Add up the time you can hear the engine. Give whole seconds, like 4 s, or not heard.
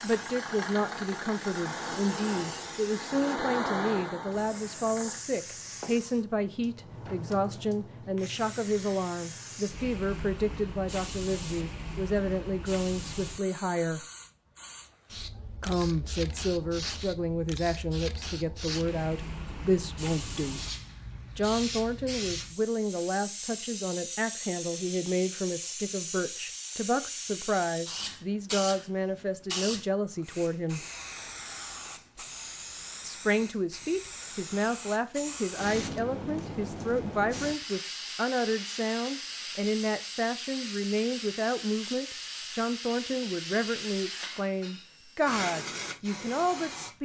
5 s.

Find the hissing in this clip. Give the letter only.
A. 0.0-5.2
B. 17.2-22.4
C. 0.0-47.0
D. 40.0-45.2
C.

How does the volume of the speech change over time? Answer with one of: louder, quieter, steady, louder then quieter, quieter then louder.
steady.